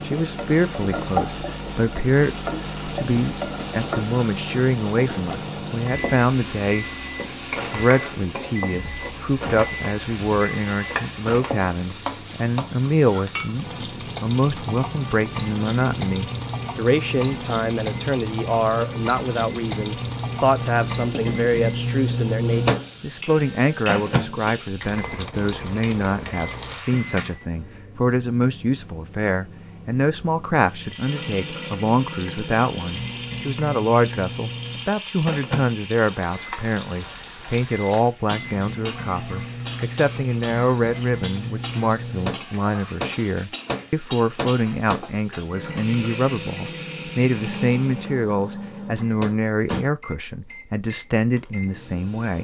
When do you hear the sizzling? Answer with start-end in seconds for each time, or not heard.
0.0-27.4, 30.6-48.1.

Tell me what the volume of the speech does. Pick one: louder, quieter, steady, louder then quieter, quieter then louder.
steady.